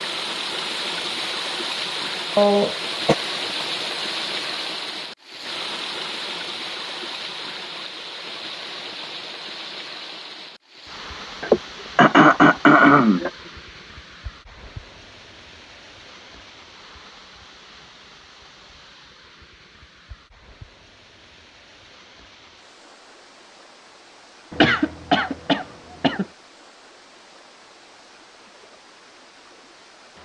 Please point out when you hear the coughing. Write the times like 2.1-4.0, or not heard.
2.4-3.1, 11.4-13.3, 24.5-26.2.